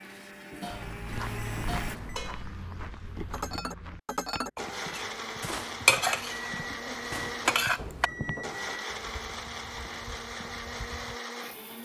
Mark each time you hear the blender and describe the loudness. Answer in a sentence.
The blender can be heard briefly from 0.0 to 1.9 s; and from 4.5 to 11.7 s, at a steady volume.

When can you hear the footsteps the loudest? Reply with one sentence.
The loudest moment of the footsteps is at 2 seconds.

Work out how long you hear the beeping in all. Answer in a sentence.
The beeping can be heard for 4 seconds in total.